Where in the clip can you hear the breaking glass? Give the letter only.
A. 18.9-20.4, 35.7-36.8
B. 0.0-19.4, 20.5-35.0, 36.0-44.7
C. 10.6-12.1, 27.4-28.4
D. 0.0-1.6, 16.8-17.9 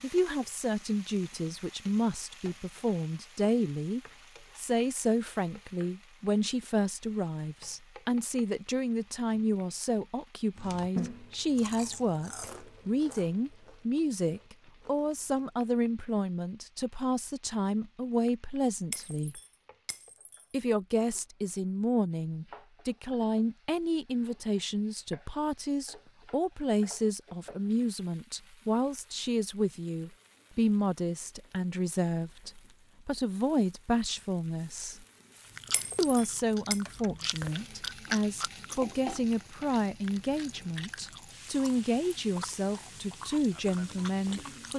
A.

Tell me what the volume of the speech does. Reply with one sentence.
The volume of the speech stays about the same.